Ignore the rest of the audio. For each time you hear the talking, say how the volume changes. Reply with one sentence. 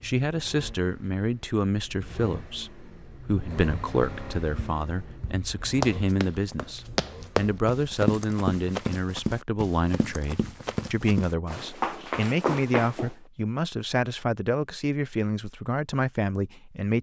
The talking can be heard from 0.0 to 16.9 s, at a steady volume.